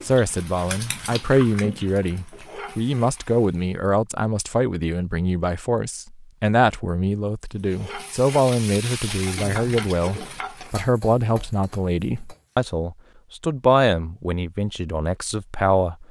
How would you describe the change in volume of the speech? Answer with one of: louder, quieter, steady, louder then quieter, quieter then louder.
steady.